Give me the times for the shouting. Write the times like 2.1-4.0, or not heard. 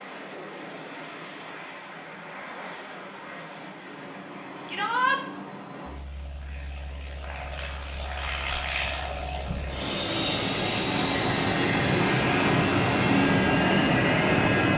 4.7-5.2.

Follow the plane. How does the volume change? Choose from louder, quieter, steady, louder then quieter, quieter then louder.
louder.